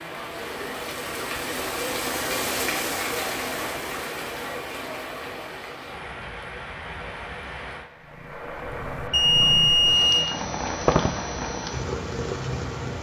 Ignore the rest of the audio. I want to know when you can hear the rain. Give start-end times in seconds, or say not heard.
0.0-12.9.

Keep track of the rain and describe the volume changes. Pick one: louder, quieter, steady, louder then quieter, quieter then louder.
quieter.